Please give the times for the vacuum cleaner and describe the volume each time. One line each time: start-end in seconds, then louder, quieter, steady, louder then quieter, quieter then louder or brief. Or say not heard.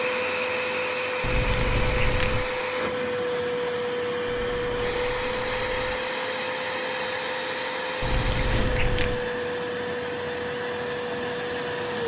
0.0-12.0 steady.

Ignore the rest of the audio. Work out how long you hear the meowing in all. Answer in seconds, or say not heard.
4 s.